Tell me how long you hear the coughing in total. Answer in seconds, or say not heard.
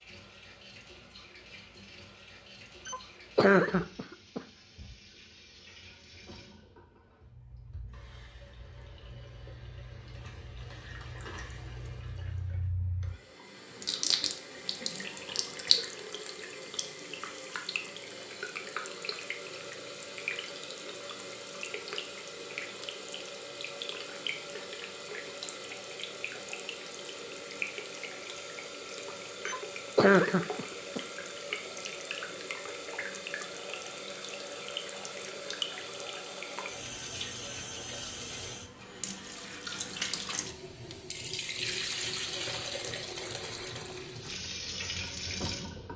3 s.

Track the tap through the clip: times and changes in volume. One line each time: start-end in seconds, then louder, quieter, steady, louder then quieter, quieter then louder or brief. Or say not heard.
0.0-45.9 louder.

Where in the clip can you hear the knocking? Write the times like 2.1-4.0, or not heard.
not heard.